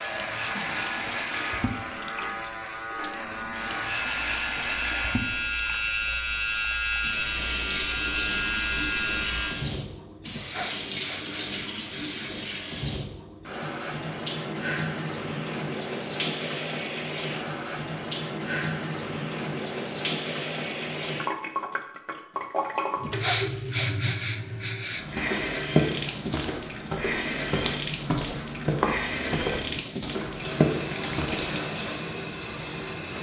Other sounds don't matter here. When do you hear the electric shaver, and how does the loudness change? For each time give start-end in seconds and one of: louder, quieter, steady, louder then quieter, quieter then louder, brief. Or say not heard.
0.0-9.6 louder.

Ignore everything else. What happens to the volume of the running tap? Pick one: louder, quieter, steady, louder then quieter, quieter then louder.
steady.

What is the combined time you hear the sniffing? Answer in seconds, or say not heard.
4 s.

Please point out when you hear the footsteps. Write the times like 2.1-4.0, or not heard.
24.9-31.6.